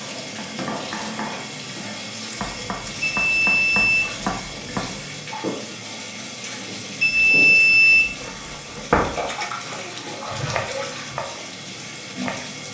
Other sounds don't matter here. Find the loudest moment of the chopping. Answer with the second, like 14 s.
9 s.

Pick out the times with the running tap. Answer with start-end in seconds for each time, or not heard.
0.0-12.6.